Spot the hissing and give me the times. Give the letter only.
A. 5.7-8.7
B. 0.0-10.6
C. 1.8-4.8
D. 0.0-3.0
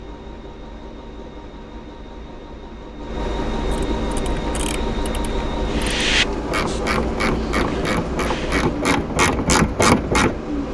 A.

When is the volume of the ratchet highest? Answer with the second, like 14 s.
10 s.